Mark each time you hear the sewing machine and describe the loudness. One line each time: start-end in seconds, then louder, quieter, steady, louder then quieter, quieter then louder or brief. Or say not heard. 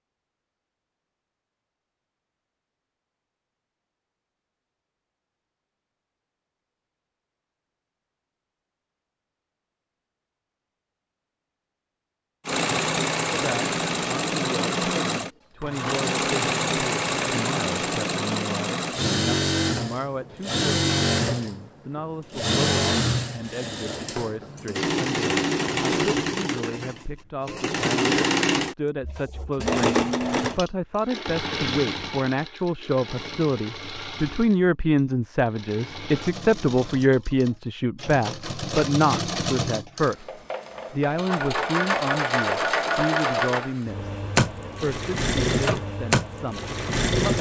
12.4-47.3 quieter then louder.